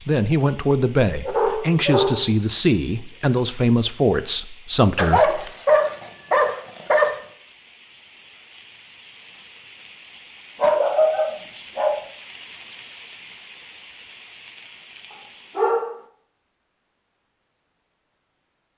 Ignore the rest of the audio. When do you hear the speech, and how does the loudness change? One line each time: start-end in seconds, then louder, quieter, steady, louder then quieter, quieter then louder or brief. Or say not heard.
0.1-5.5 steady.